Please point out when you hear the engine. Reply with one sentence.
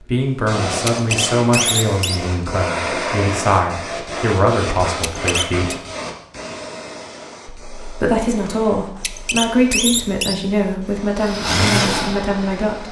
You can hear the engine from 11.2 to 12.8 s.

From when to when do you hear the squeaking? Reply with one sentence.
The squeaking can be heard from 0.8 to 2.2 s, from 5.0 to 5.8 s and from 8.9 to 10.3 s.